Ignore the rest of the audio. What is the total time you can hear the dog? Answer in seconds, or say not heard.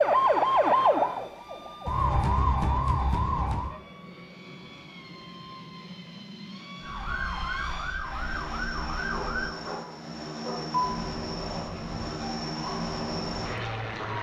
2 s.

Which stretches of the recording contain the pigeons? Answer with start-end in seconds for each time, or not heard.
not heard.